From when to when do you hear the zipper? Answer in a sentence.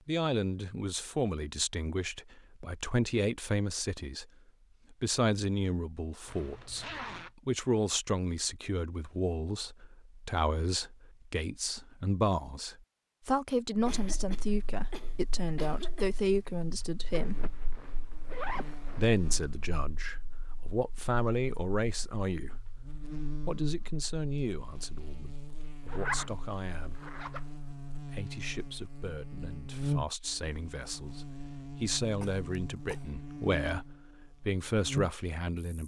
The zipper can be heard from 6.2 to 7.3 s, from 17.1 to 19.1 s and from 25.9 to 27.6 s.